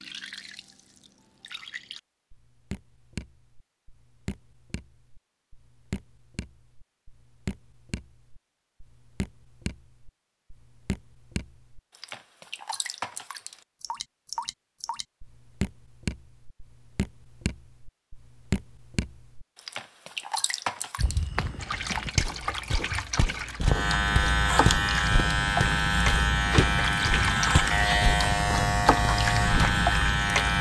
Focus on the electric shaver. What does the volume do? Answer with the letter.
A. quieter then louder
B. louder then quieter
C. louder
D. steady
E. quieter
D.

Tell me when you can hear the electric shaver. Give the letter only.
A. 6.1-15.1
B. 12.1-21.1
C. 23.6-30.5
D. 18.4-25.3
C.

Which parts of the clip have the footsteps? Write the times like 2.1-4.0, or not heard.
20.9-29.9.